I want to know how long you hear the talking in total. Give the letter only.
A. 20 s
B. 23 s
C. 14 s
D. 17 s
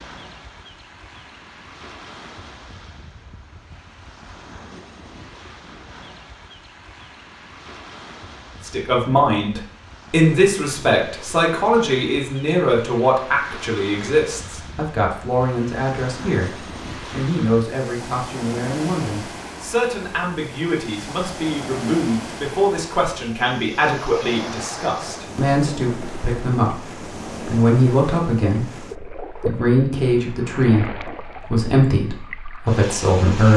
B.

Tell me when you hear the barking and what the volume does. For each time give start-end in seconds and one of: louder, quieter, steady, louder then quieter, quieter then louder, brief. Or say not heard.
not heard.